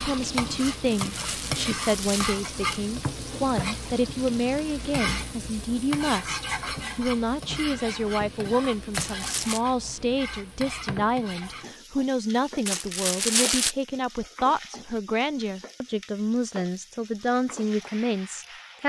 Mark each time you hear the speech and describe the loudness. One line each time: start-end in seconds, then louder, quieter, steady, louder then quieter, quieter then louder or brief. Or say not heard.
0.0-18.8 steady.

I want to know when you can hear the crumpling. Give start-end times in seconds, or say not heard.
0.8-2.8, 8.9-9.6, 12.7-13.8.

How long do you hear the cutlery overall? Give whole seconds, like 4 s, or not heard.
not heard.